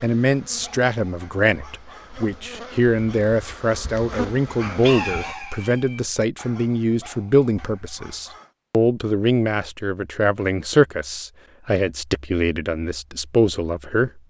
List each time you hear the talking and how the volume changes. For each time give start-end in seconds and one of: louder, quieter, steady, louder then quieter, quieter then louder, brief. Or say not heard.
0.0-14.2 steady.